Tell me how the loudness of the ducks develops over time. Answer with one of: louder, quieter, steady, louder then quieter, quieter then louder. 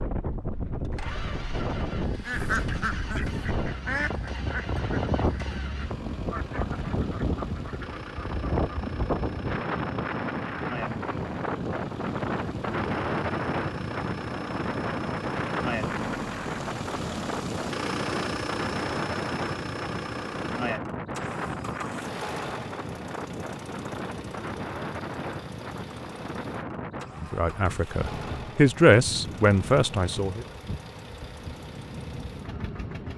quieter.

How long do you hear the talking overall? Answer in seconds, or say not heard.
3 s.